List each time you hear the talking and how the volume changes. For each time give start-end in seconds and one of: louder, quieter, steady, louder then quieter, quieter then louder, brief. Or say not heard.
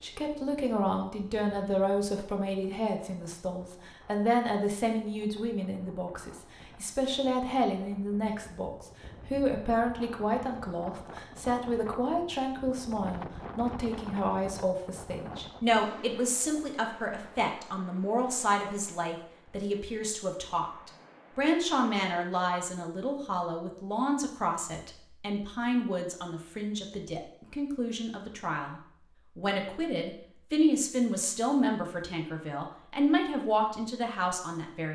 0.0-34.9 steady.